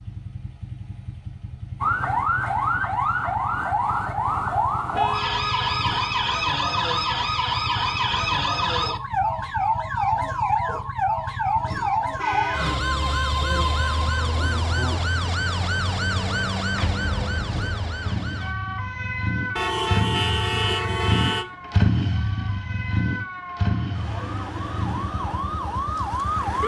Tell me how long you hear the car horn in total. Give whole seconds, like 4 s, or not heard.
4 s.